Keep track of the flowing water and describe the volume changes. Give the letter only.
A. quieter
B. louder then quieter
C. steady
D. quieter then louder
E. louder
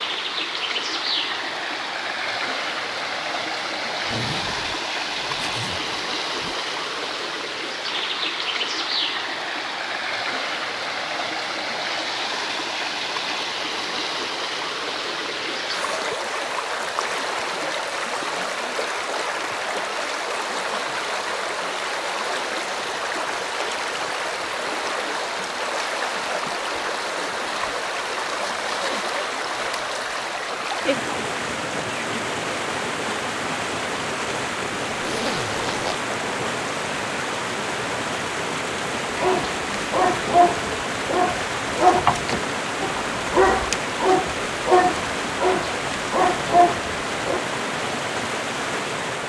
C.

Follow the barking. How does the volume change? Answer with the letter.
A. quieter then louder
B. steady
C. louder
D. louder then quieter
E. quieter
B.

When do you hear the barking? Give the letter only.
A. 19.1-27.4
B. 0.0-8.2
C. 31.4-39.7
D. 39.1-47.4
D.